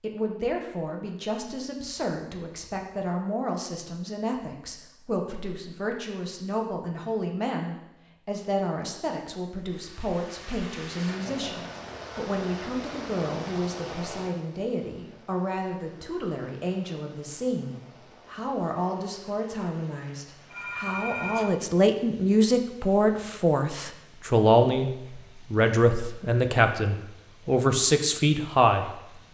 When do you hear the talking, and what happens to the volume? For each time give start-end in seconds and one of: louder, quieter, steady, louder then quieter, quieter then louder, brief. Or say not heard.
0.0-28.9 louder.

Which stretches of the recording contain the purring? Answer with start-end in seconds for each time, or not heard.
not heard.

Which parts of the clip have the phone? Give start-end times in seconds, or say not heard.
20.5-21.6.